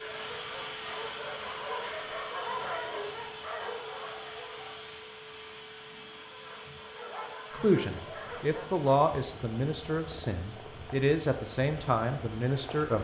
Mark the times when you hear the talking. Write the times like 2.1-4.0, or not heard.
7.5-12.9.